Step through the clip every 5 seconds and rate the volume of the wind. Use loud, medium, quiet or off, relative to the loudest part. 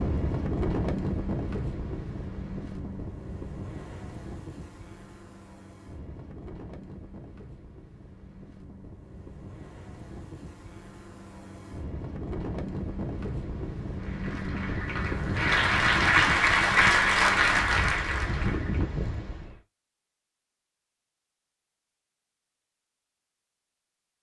loud, quiet, loud, loud, off.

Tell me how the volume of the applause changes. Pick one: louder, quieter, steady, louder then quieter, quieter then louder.
louder then quieter.